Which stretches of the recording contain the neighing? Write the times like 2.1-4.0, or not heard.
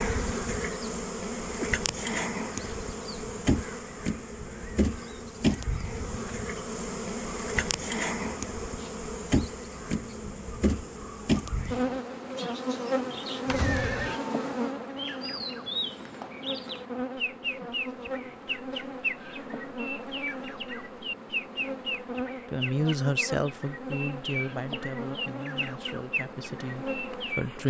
13.4-14.2.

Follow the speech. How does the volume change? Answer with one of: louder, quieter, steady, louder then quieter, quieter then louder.
quieter.